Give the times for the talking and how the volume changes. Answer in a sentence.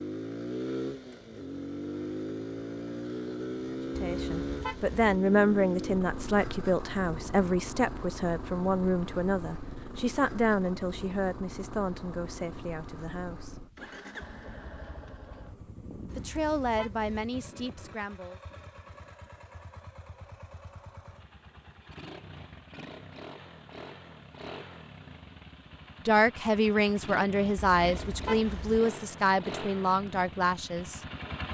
The talking can be heard from 3.9 to 13.6 s, getting quieter; briefly from 16.1 to 18.4 s; and from 26.1 to 31.0 s, at a steady volume.